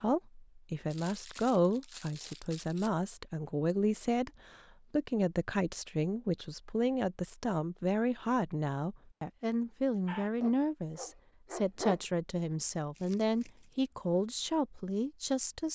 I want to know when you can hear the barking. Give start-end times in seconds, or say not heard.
10.1-12.0.